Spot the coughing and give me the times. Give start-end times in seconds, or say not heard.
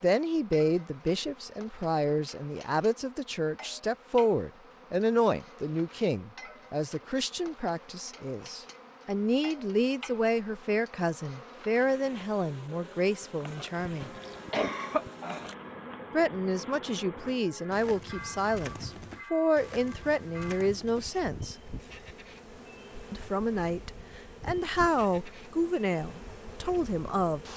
13.7-15.5.